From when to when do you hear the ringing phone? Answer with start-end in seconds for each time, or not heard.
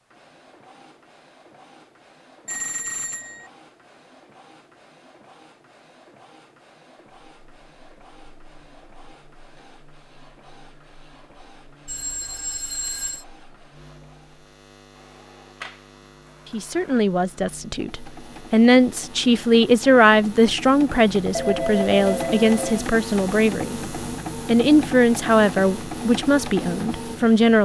2.5-3.5, 11.8-13.2, 21.3-22.9.